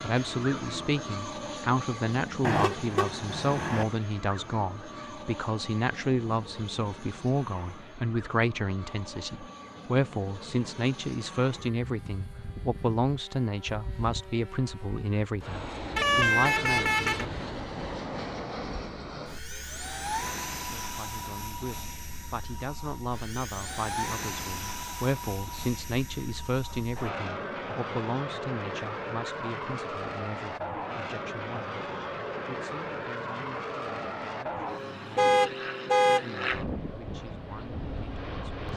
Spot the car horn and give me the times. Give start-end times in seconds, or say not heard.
2.4-3.9, 15.9-17.2, 35.1-36.2.